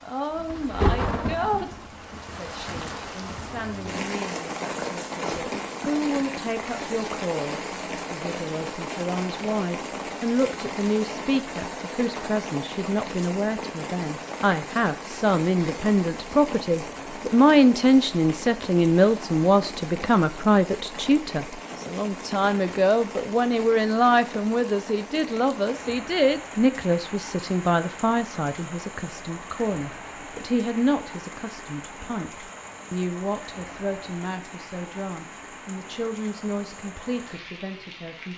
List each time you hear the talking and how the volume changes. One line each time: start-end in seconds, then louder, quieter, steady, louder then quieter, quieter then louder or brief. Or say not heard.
0.0-38.3 louder then quieter.